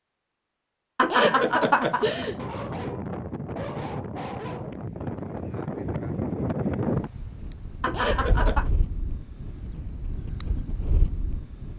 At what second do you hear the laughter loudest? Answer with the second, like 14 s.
1 s.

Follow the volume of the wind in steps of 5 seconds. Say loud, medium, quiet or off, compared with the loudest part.
loud, loud, medium.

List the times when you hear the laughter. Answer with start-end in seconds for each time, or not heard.
0.9-2.4, 7.8-8.7.